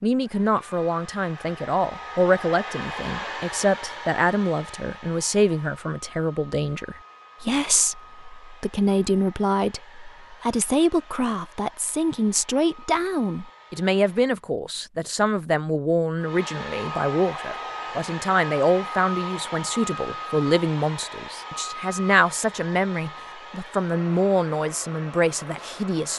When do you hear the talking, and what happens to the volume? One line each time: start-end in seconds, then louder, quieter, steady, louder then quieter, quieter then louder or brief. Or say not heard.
0.0-26.1 steady.